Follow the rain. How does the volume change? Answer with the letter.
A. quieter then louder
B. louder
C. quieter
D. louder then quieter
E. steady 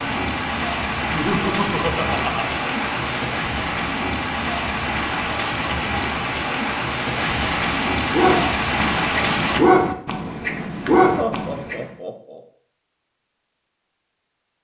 E.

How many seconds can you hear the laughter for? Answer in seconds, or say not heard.
3 s.